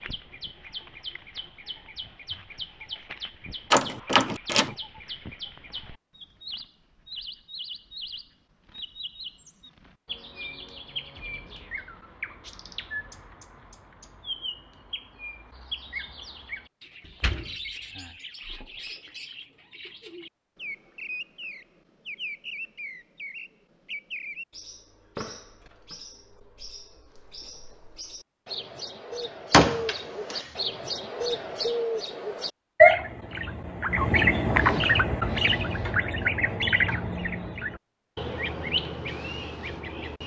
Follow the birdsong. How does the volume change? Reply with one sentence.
The loudness of the birdsong goes up.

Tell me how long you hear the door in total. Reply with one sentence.
The door can be heard for 3 seconds in total.